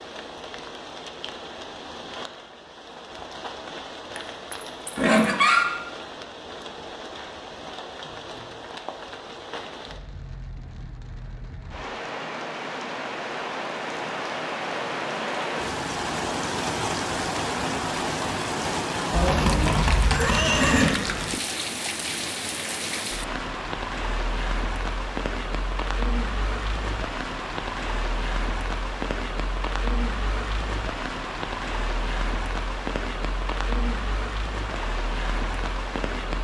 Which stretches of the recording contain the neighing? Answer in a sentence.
The neighing can be heard from 4.2 to 5.7 s and from 19.1 to 20.9 s.